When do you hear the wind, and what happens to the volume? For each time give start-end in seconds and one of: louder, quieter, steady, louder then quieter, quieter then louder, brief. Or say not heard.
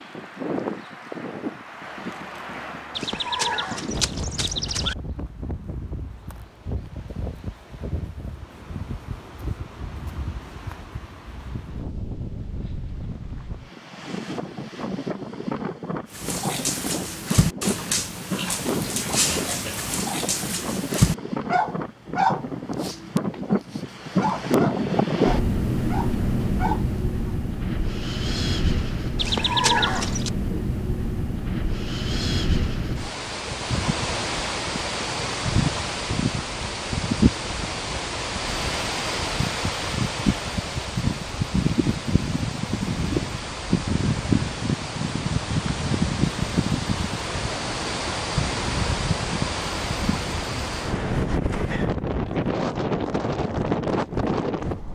0.0-54.9 louder.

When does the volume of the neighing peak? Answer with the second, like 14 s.
30 s.